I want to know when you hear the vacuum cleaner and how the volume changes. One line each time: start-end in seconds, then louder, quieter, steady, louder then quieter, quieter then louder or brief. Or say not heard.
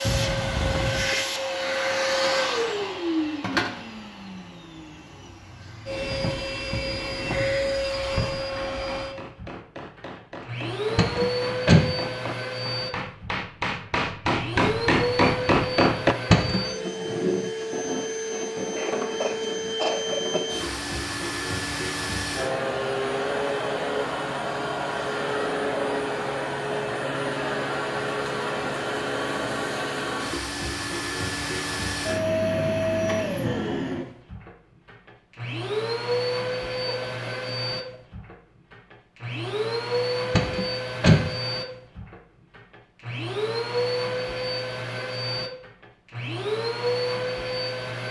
0.0-48.0 steady.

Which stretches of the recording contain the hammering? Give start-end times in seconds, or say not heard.
8.6-16.1.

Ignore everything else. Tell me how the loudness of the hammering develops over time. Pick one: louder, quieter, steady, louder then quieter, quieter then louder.
louder.